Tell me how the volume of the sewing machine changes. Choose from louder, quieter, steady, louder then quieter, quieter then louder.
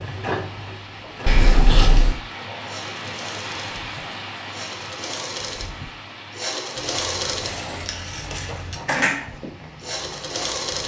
quieter then louder.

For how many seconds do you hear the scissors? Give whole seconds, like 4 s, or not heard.
3 s.